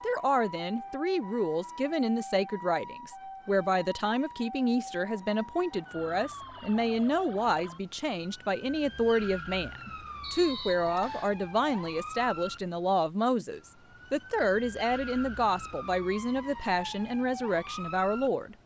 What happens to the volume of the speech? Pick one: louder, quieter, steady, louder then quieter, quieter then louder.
steady.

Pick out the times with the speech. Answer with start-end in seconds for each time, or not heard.
0.0-18.6.